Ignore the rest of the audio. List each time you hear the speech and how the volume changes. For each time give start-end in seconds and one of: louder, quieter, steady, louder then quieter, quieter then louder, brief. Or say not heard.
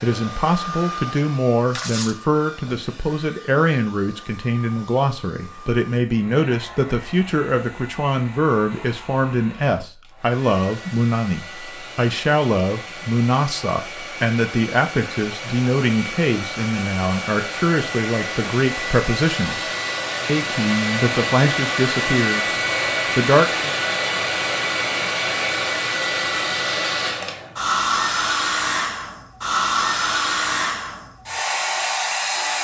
0.0-22.5 steady
23.1-23.8 brief.